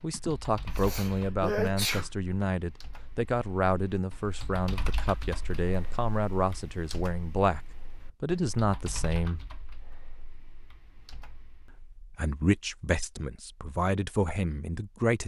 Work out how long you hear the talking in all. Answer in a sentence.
You can hear the talking for 13 seconds altogether.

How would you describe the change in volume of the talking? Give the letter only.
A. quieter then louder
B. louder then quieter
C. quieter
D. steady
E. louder
D.